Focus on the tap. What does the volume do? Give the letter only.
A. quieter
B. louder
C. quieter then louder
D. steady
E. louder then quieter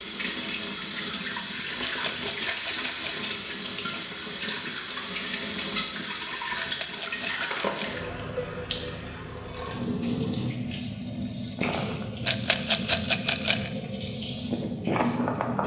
D.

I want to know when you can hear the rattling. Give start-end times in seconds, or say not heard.
1.8-3.2, 6.5-8.0, 12.2-13.7.